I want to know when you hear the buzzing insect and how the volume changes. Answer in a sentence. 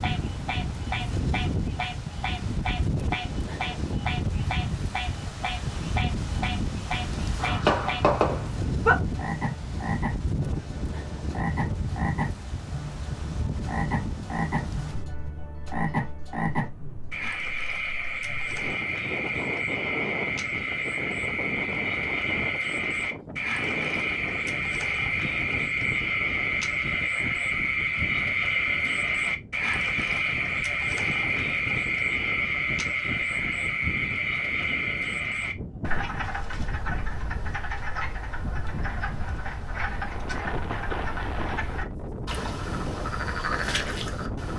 The buzzing insect can't be heard in this clip.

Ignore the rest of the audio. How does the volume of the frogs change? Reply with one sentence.
The volume of the frogs goes up, then down.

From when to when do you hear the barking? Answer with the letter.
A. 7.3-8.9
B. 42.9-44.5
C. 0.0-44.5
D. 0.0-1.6
A.